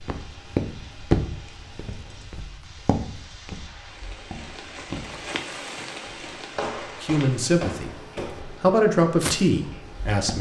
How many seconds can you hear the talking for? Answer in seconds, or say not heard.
3 s.